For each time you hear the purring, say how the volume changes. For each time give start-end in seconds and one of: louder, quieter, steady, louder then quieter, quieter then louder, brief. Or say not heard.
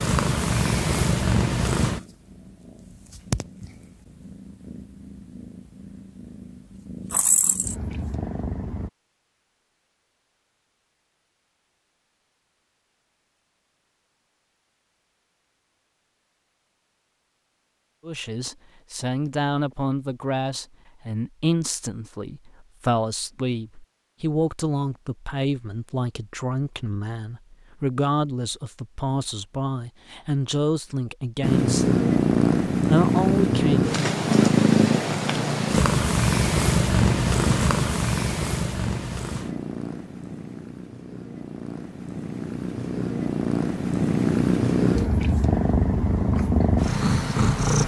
0.0-8.9 quieter then louder
31.4-47.8 quieter then louder.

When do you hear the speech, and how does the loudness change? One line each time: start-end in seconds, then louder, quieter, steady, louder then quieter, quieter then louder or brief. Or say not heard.
18.1-32.0 steady
32.9-33.9 brief.